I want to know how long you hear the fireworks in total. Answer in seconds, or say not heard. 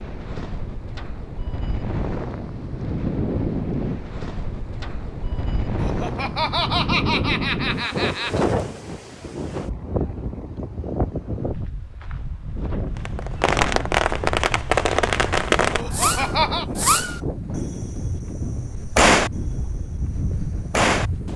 8 s.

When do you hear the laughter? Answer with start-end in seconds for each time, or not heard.
5.8-8.4, 15.8-16.6.